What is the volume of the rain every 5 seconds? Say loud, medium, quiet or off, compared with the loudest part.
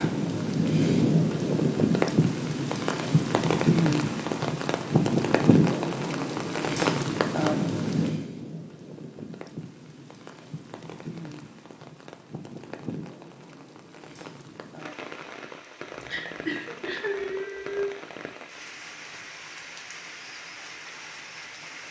loud, loud, quiet, quiet, quiet.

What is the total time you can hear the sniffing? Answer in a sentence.
The sniffing can be heard for 2 seconds in total.